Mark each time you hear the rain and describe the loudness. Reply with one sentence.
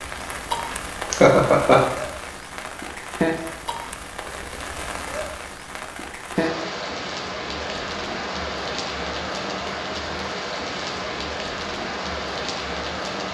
The rain can be heard from 0.0 to 13.3 s, at a steady volume.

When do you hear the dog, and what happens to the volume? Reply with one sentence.
The dog can't be heard in this clip.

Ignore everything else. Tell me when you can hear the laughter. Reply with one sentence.
You can hear the laughter from 1.1 to 1.8 s.